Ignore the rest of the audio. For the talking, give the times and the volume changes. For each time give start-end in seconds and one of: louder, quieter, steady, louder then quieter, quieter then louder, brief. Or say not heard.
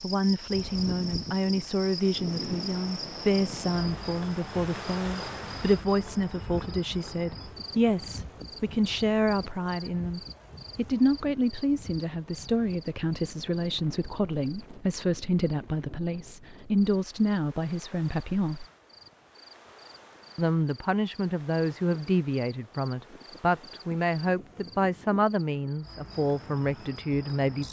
0.0-18.6 steady
20.4-27.6 steady.